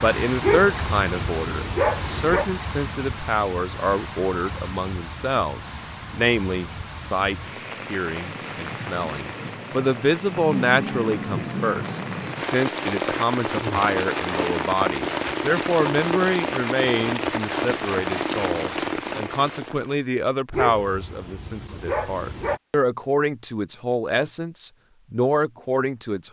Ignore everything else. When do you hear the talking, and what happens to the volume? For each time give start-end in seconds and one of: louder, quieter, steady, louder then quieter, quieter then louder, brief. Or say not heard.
0.0-26.2 steady.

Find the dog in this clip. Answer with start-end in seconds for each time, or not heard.
0.4-2.5, 20.5-22.6.